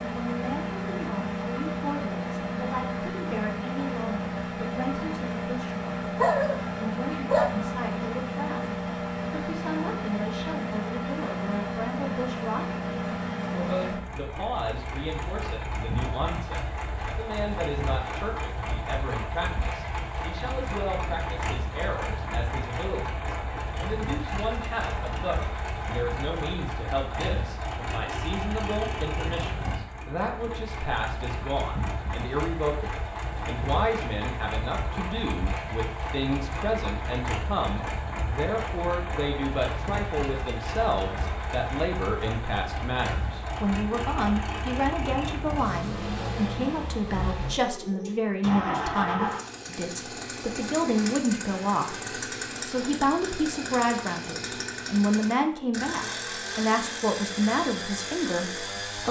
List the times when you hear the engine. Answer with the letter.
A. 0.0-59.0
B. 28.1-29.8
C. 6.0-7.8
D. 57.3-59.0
A.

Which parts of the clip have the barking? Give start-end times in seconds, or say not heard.
6.0-7.8.